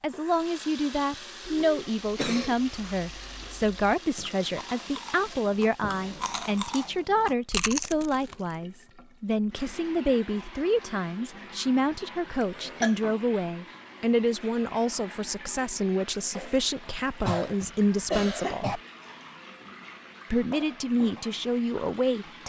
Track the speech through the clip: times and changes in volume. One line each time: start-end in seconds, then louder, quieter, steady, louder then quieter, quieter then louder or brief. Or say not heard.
0.0-18.8 steady
20.3-22.4 brief.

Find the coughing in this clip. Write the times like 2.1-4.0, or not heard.
1.4-2.5, 12.4-12.9, 17.2-18.8.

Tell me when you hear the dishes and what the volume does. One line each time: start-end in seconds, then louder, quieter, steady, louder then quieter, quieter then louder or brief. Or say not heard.
not heard.